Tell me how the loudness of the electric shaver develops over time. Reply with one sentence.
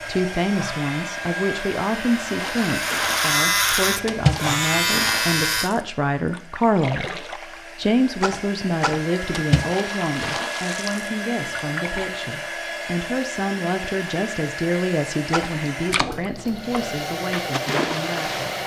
The loudness of the electric shaver goes up.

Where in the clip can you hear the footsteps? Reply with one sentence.
The footsteps can't be heard in this clip.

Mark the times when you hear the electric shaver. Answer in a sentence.
The electric shaver can be heard from 0.0 to 5.7 s.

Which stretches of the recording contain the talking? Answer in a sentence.
You can hear the talking from 0.1 to 18.6 s.